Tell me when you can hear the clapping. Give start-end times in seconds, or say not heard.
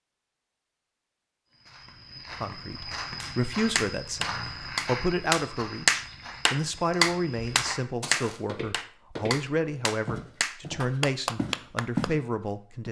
3.2-12.1.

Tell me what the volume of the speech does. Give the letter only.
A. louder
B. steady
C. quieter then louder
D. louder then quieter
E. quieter
B.